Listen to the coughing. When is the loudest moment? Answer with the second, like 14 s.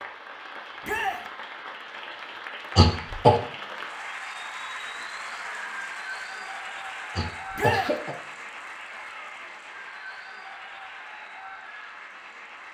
3 s.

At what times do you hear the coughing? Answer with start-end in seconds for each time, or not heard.
2.8-3.4, 7.2-8.2.